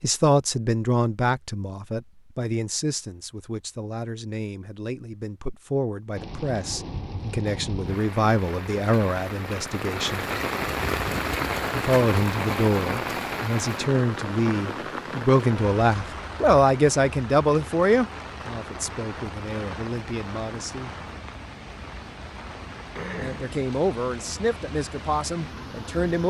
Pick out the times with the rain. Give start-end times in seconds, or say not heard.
6.2-26.2.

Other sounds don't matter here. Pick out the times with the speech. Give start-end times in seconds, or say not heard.
0.0-10.2, 11.8-20.9, 23.2-26.2.